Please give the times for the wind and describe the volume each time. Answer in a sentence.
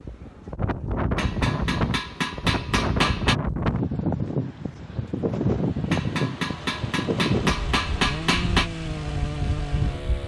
The wind can be heard from 0.0 to 10.2 s, getting quieter.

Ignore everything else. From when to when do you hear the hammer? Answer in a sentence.
The hammer can be heard from 1.1 to 3.4 s and from 5.9 to 8.7 s.